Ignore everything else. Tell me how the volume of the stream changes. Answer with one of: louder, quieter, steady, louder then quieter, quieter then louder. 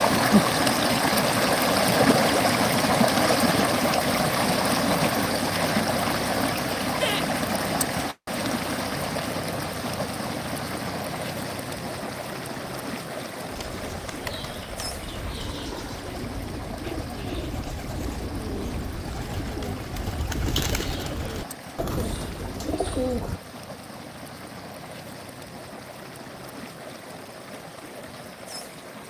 quieter.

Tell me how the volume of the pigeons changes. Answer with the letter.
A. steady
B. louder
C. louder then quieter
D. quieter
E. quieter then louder
B.